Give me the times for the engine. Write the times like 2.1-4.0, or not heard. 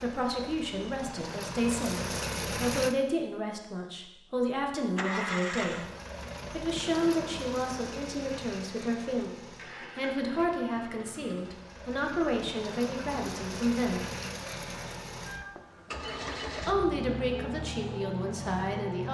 0.0-3.0, 4.8-19.0.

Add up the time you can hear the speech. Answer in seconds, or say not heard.
16 s.